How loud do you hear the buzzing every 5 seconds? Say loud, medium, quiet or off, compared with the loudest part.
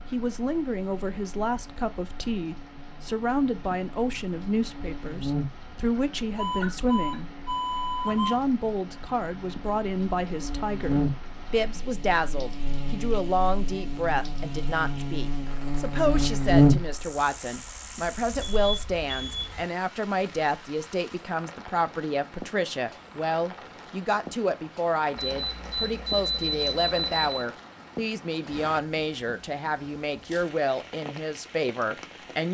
quiet, quiet, medium, loud, off, off, off.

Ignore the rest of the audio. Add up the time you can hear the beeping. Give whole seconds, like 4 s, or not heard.
6 s.